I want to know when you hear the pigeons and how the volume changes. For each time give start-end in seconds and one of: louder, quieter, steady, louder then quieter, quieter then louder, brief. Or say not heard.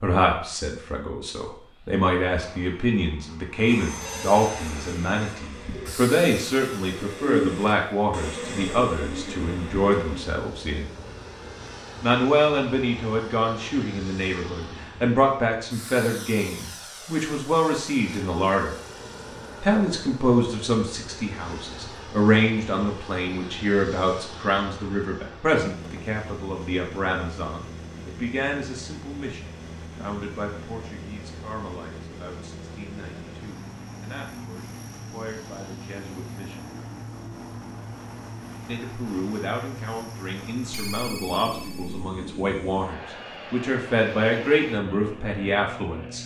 4.6-10.2 louder then quieter.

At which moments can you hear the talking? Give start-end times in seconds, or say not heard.
0.0-10.8, 12.0-18.8, 19.6-36.8, 38.6-46.2.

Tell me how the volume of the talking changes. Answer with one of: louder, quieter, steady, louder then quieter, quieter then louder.
quieter then louder.